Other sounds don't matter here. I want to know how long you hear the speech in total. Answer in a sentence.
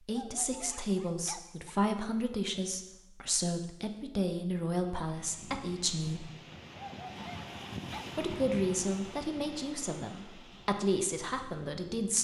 The speech can be heard for 10 seconds in total.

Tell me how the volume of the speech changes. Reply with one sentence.
The volume of the speech stays about the same.